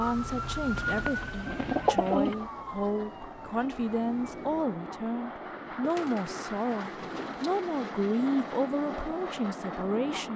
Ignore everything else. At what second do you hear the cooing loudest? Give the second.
2 s.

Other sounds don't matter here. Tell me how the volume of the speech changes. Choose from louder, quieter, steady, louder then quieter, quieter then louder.
steady.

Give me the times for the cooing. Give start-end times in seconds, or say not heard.
0.8-2.4, 5.8-7.7.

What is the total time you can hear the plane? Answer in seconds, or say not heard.
10 s.